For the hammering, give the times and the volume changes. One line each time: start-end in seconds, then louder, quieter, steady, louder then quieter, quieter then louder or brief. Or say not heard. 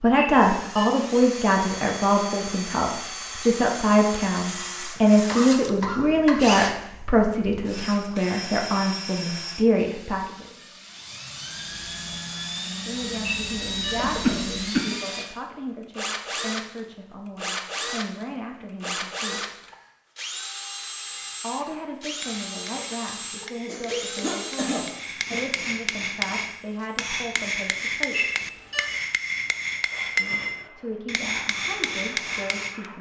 21.1-32.9 louder.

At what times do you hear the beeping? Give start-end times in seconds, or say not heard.
0.1-0.9, 13.2-14.0, 28.1-28.9.